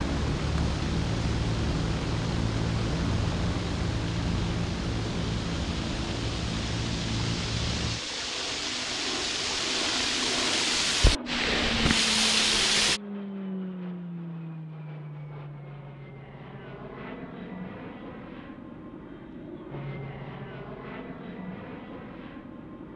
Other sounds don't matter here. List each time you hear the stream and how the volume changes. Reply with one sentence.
You can hear the stream from 0.0 to 13.0 s, getting louder.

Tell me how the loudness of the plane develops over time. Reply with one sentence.
The loudness of the plane goes down.